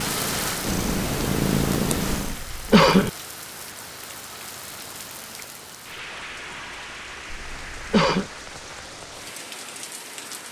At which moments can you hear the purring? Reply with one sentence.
The purring can be heard from 0.0 to 2.4 s.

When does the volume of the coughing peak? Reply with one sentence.
The volume of the coughing peaks at 3 seconds.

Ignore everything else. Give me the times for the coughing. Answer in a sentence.
The coughing can be heard from 2.2 to 3.1 s and from 7.3 to 8.3 s.